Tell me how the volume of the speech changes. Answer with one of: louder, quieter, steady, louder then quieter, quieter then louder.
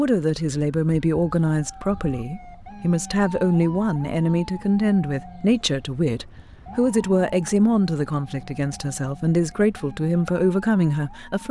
steady.